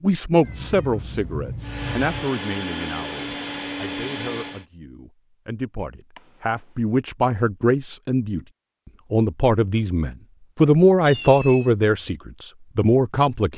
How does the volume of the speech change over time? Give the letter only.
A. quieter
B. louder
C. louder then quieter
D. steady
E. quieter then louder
E.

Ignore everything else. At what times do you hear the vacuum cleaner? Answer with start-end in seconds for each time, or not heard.
1.6-4.7.